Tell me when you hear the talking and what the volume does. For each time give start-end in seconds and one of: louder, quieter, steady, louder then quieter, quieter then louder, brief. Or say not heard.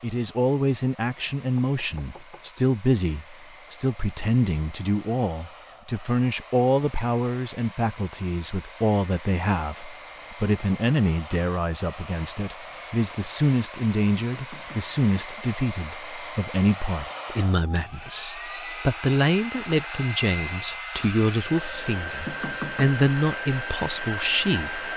0.0-24.8 steady.